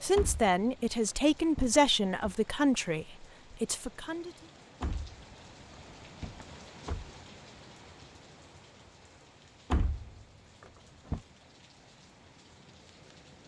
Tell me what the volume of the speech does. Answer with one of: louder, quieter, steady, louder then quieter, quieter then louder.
quieter.